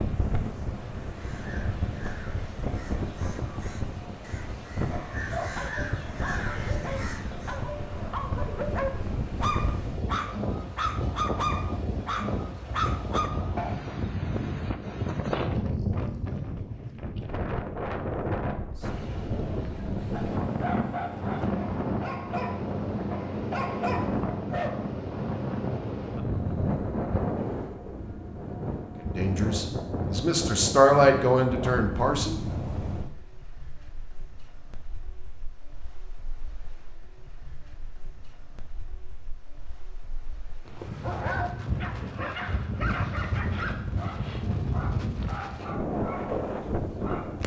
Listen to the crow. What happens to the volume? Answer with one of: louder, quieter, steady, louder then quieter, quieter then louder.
louder.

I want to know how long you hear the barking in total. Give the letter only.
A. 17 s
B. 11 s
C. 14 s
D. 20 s
D.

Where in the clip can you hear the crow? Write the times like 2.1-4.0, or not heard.
1.1-7.6.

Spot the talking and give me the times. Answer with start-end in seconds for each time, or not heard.
29.0-32.4.